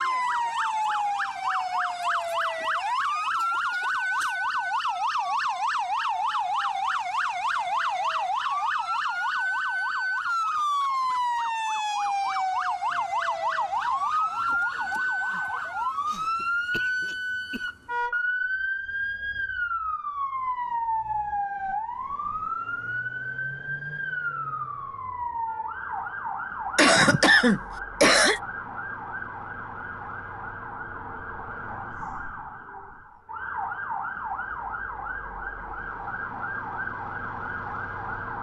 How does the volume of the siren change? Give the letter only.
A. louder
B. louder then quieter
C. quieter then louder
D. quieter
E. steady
D.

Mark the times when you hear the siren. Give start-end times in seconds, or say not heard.
0.0-38.3.